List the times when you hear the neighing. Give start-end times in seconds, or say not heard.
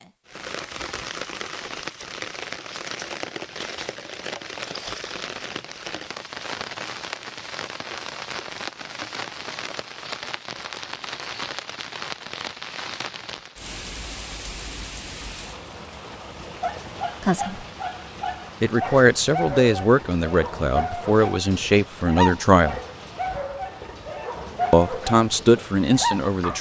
not heard.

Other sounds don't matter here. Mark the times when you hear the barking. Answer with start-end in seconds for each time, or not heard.
16.6-26.5.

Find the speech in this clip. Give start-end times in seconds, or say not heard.
17.2-17.6, 18.6-22.8, 24.7-26.5.